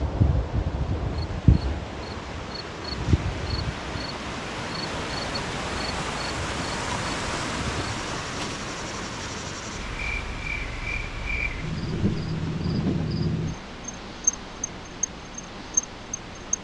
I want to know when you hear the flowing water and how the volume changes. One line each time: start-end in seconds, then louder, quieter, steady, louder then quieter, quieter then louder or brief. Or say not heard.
0.0-16.6 louder then quieter.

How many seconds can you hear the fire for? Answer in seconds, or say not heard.
not heard.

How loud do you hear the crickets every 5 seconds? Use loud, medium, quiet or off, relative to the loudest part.
loud, medium, loud, loud.